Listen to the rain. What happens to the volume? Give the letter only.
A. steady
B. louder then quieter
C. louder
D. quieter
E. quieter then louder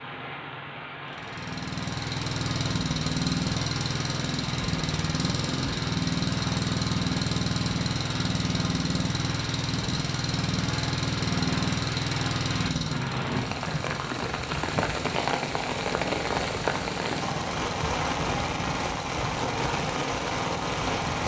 C.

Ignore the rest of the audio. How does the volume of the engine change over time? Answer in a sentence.
The volume of the engine goes down.